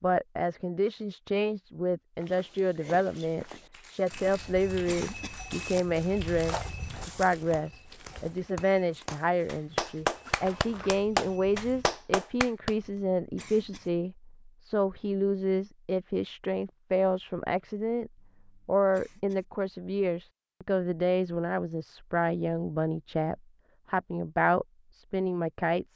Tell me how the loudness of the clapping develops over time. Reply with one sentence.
The volume of the clapping goes up.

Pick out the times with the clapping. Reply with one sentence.
The clapping can be heard from 3.7 to 12.8 s.